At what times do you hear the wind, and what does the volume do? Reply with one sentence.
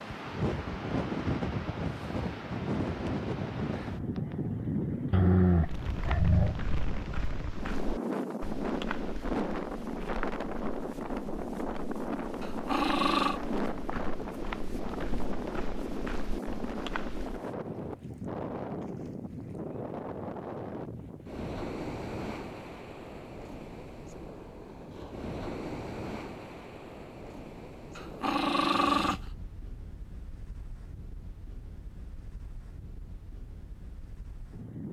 The wind can be heard from 0.0 to 34.8 s, getting quieter.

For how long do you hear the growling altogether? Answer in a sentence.
You can hear the growling for 4 seconds altogether.